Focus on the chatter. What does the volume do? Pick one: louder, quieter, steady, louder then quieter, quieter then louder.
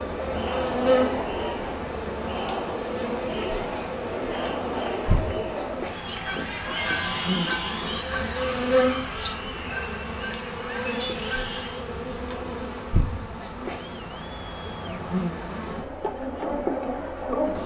quieter.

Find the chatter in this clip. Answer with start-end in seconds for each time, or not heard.
0.0-17.6.